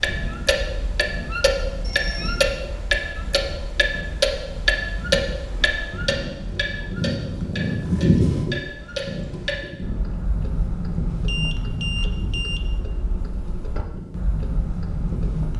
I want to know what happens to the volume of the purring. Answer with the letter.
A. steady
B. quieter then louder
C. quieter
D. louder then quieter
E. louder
D.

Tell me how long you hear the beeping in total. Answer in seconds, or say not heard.
2 s.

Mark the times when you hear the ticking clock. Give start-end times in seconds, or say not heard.
0.0-15.5.